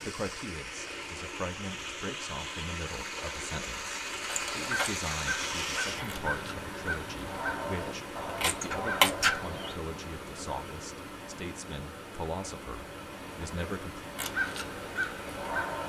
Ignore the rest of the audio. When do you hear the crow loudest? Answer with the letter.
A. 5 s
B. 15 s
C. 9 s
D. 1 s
C.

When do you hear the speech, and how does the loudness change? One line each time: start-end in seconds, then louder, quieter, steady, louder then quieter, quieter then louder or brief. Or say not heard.
0.0-14.1 steady.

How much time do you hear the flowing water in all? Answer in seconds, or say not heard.
16 s.